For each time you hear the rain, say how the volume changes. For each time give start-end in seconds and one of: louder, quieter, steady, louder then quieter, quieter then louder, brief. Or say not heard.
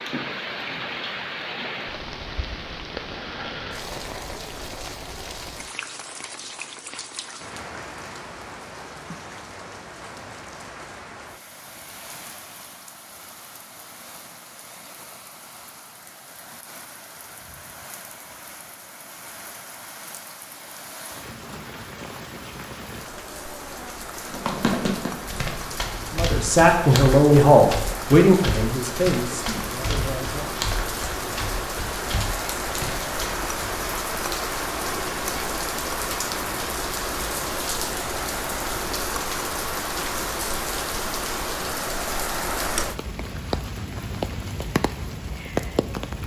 0.0-46.2 quieter then louder.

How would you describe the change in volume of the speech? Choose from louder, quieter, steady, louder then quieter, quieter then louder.
quieter.